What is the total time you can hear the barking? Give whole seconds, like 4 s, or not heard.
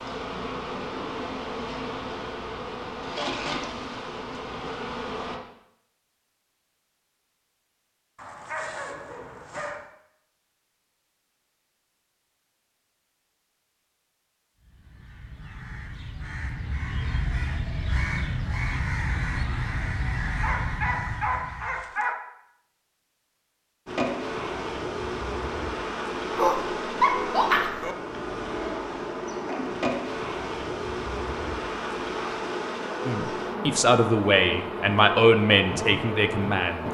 5 s.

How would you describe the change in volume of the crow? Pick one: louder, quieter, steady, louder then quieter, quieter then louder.
louder.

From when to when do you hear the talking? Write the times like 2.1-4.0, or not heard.
33.0-36.8.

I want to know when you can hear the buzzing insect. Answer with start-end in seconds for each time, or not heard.
0.0-5.4, 23.9-36.8.